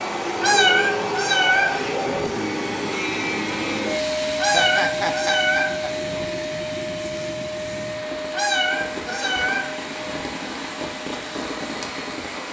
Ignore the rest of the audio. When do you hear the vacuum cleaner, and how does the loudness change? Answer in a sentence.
You can hear the vacuum cleaner from 0.0 to 12.4 s, getting quieter.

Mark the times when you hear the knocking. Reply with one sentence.
You can't hear the knocking here.